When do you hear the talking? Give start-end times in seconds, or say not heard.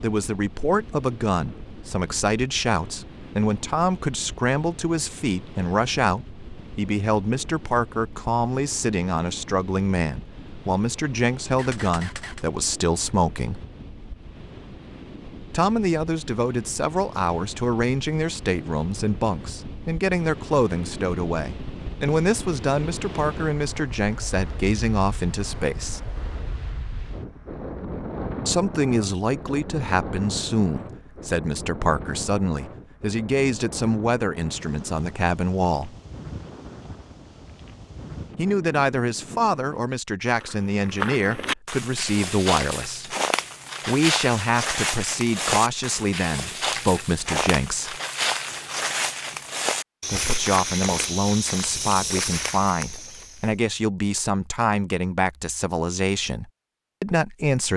0.0-13.7, 15.5-26.0, 28.4-36.0, 38.4-43.1, 43.9-48.0, 50.1-57.7.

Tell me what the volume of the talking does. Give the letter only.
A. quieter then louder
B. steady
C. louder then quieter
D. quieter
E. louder
B.